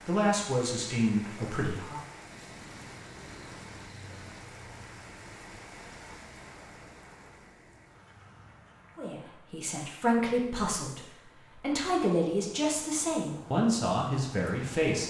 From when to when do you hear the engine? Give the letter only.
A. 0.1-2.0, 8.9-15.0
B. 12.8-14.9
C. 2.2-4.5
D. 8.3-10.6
C.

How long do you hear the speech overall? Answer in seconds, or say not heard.
8 s.